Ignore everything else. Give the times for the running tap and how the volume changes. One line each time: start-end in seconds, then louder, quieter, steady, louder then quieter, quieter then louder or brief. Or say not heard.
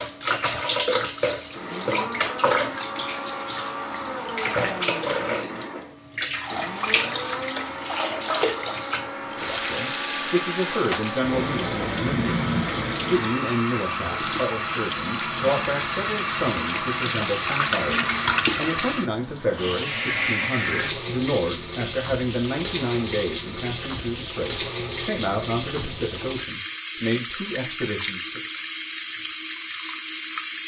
0.0-30.6 steady.